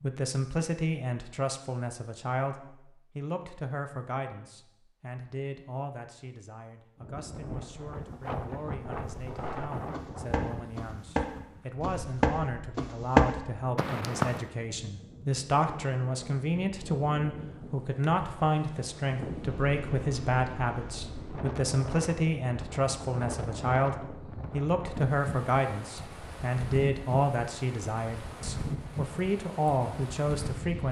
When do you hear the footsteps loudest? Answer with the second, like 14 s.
13 s.